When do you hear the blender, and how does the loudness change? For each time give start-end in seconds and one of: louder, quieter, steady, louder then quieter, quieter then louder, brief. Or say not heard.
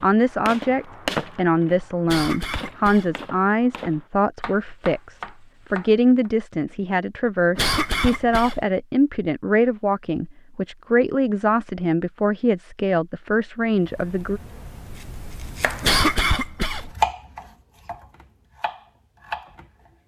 not heard.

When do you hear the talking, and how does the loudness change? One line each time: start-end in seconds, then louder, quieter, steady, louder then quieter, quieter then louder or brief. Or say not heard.
0.0-14.4 steady.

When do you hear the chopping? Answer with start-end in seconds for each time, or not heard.
0.0-6.3, 13.8-19.9.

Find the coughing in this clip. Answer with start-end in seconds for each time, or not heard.
2.0-3.1, 7.5-8.7, 15.8-16.9.